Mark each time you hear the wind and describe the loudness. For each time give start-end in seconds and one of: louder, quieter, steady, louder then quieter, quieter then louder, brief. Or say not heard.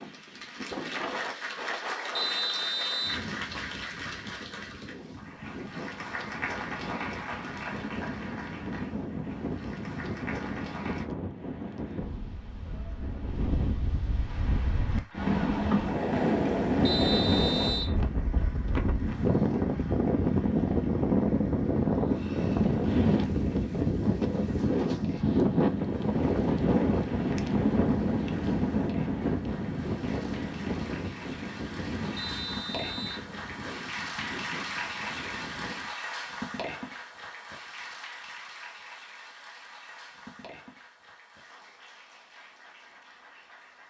0.0-36.0 louder then quieter.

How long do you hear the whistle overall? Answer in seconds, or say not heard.
3 s.